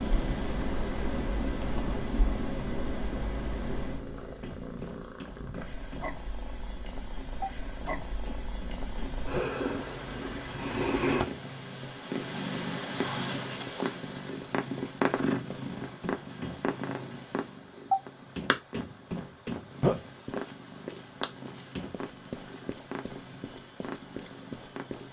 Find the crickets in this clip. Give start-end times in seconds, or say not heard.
0.0-25.0.